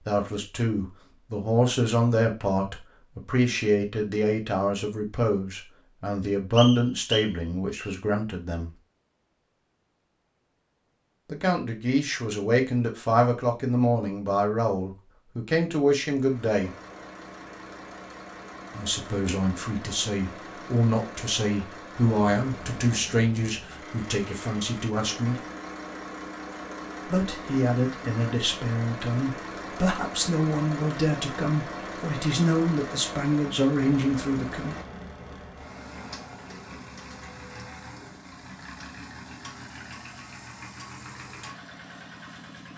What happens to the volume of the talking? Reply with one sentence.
The loudness of the talking stays about the same.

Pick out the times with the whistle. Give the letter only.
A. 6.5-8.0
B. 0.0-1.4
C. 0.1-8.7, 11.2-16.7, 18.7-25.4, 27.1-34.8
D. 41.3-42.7
A.